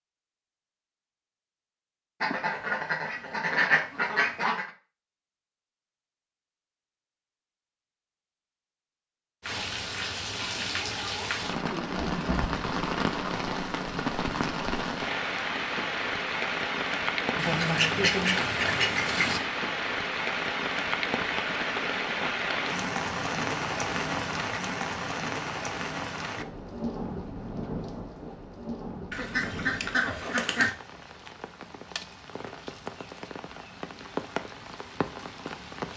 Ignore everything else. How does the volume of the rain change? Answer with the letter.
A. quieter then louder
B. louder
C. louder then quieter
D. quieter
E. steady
D.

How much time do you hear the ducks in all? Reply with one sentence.
The ducks can be heard for 6 seconds in total.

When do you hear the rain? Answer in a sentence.
You can hear the rain from 9.4 to 35.9 s.